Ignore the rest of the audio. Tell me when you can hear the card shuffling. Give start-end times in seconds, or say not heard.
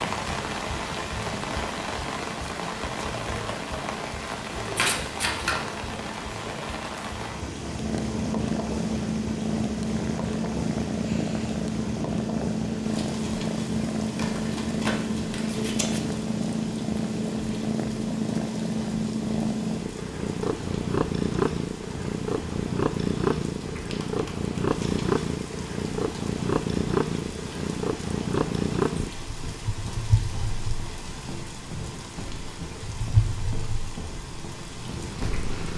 4.8-5.7, 14.2-16.0, 23.8-24.8.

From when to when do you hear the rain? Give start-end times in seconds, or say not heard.
0.0-35.7.